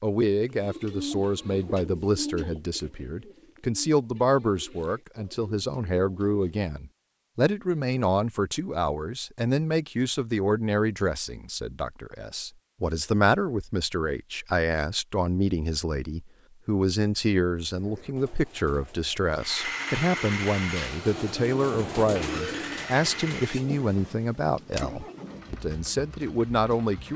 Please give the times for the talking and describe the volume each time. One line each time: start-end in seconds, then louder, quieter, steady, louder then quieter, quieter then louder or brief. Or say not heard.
0.0-27.1 steady.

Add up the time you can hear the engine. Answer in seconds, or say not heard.
8 s.